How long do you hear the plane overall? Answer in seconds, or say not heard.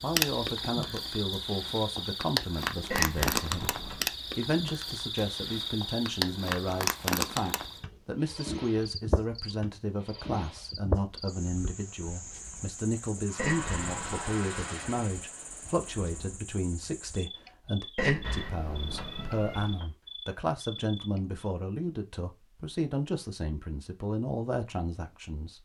3 s.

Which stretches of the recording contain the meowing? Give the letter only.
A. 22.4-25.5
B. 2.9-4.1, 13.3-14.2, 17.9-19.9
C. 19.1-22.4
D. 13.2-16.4
B.